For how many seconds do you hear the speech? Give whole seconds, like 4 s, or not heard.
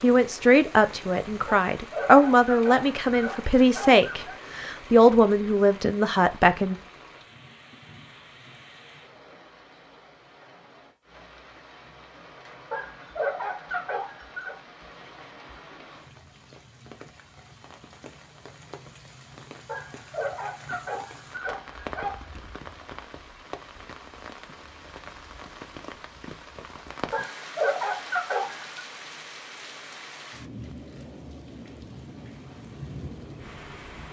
7 s.